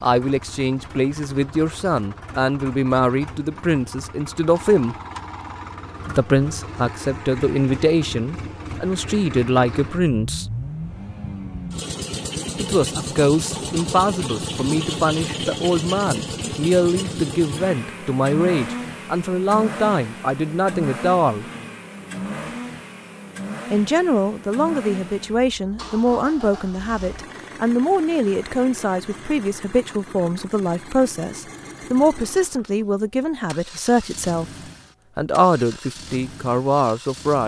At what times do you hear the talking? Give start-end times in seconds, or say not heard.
0.0-5.0, 6.0-10.4, 12.6-21.4, 23.7-34.5, 35.1-37.4.